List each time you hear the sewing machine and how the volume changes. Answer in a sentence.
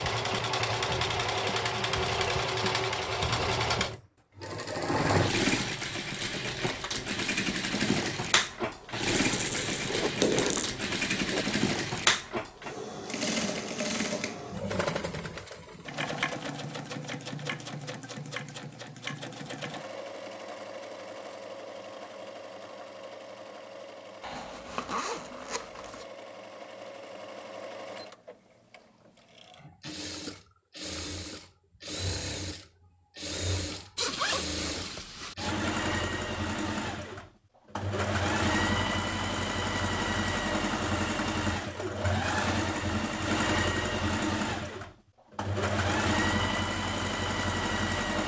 The sewing machine can be heard from 0.0 to 48.2 s, getting quieter then louder.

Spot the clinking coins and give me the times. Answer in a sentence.
The clinking coins can be heard from 9.1 to 10.7 s.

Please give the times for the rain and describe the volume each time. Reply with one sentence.
You can't hear the rain here.